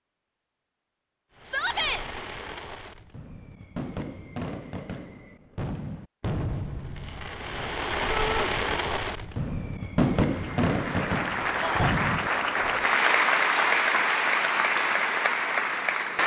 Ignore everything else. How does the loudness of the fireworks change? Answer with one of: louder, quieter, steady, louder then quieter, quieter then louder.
louder.